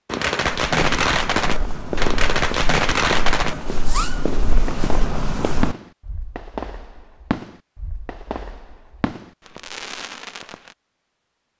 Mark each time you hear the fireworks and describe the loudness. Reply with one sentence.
The fireworks can be heard from 0.1 to 10.8 s, getting quieter.